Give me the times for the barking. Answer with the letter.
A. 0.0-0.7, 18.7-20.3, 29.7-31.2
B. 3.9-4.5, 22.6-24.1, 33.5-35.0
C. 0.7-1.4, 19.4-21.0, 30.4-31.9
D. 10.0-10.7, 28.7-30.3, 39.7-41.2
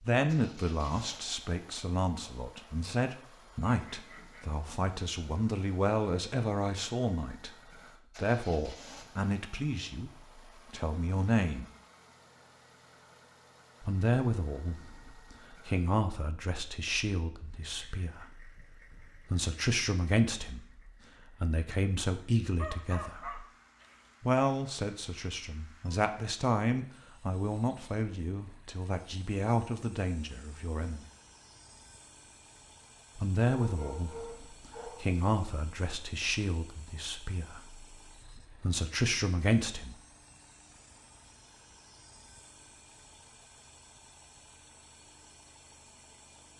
B.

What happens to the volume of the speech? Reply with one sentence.
The volume of the speech stays about the same.